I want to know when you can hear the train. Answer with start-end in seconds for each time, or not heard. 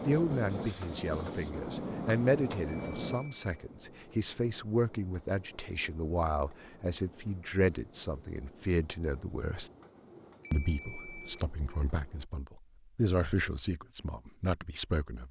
0.0-12.3.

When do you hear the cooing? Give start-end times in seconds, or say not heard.
not heard.